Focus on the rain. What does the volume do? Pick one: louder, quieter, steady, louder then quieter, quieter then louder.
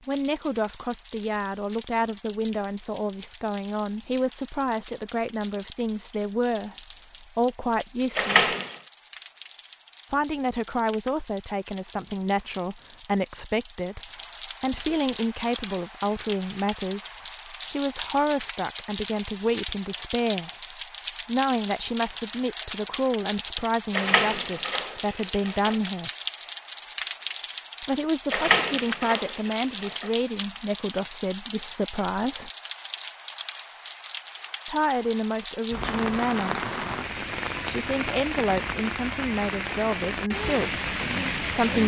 louder.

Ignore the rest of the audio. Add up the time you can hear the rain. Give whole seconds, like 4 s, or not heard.
42 s.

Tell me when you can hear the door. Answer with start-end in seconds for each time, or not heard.
8.2-8.8, 23.9-25.8, 28.3-30.1.